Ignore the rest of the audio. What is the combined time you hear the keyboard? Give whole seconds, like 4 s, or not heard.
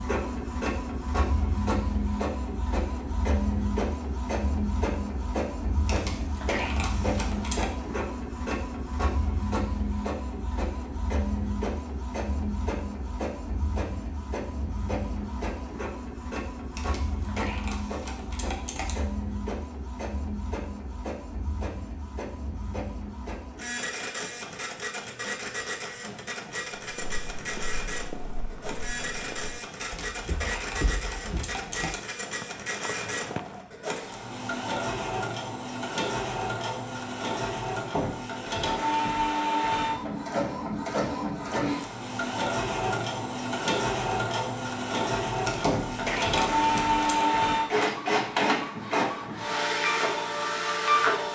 8 s.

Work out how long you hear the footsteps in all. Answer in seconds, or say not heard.
7 s.